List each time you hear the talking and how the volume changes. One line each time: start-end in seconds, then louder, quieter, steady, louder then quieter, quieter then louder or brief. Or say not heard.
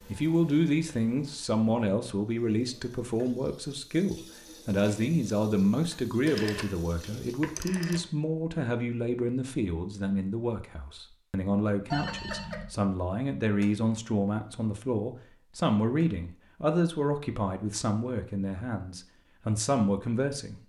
0.0-20.6 steady.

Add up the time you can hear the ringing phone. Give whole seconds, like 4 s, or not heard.
2 s.